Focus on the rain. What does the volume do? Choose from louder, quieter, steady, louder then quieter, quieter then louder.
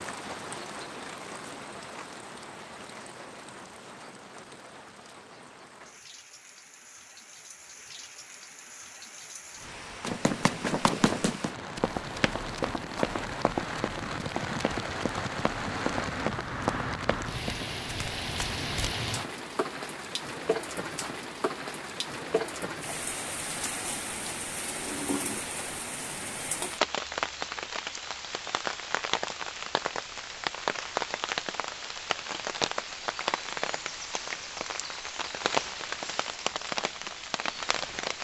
louder.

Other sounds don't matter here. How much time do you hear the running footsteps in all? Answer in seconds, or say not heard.
9 s.